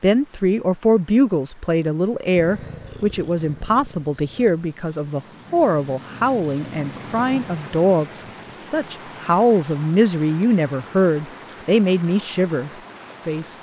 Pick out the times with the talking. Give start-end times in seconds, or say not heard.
0.0-13.5.